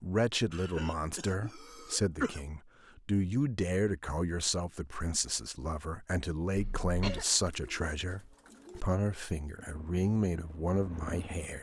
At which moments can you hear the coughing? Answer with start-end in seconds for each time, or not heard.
0.5-2.4, 6.5-7.2.